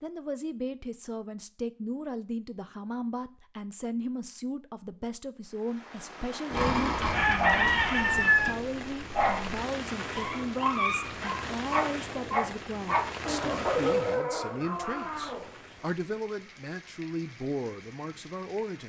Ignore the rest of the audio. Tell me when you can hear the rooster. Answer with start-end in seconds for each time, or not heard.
6.5-8.5.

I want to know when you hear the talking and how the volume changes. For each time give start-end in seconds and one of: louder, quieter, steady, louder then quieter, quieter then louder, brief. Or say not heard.
0.0-18.8 steady.